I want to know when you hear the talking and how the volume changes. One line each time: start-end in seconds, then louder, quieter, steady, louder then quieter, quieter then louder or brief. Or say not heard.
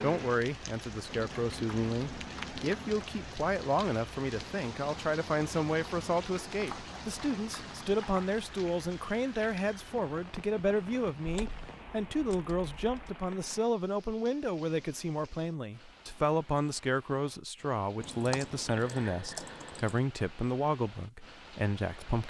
0.0-22.2 steady.